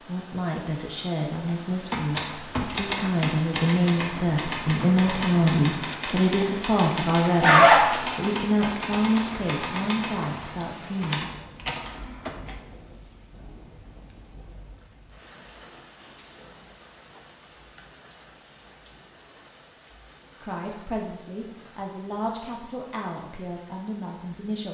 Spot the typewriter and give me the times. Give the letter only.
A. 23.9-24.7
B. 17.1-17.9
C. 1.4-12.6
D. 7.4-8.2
C.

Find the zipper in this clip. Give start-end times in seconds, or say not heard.
7.4-8.2.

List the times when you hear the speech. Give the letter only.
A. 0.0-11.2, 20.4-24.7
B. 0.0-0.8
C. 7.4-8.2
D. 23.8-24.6
A.